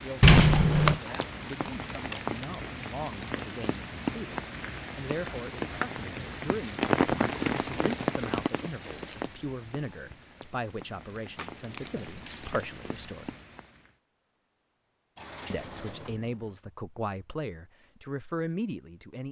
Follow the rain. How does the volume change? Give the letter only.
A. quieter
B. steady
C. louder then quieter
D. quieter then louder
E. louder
C.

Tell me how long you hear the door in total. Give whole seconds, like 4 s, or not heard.
2 s.